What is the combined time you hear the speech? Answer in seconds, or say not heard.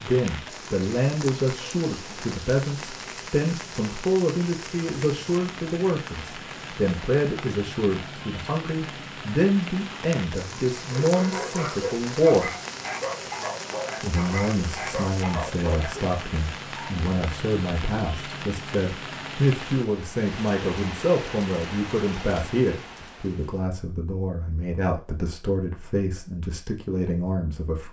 26 s.